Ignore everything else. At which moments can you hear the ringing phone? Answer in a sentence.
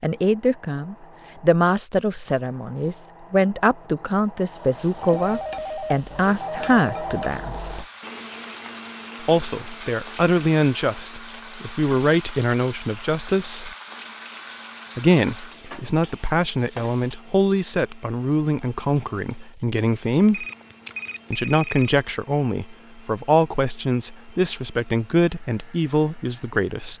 You can hear the ringing phone from 5.0 to 7.2 s and from 20.1 to 21.9 s.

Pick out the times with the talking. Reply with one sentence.
You can hear the talking from 0.0 to 7.8 s, from 9.2 to 13.7 s, from 14.9 to 20.4 s and from 21.3 to 26.9 s.